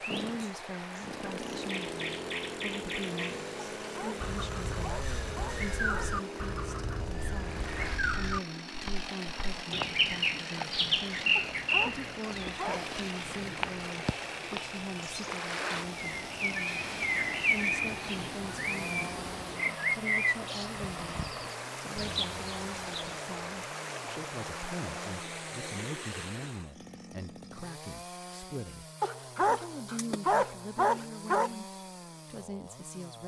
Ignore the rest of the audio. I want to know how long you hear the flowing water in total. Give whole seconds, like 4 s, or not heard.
27 s.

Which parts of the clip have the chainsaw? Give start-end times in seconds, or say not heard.
0.0-33.2.